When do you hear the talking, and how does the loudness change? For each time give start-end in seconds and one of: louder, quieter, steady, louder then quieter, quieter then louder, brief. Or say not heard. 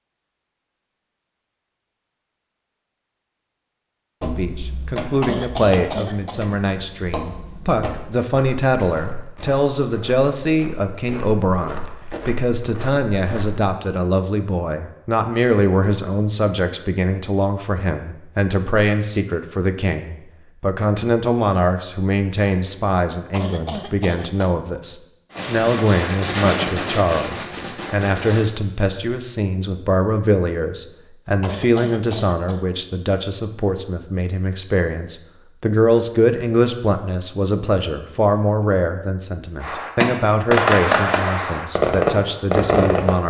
4.3-43.2 steady.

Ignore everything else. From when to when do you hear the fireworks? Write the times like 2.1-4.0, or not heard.
25.3-28.4, 39.6-43.2.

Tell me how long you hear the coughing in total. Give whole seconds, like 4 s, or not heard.
4 s.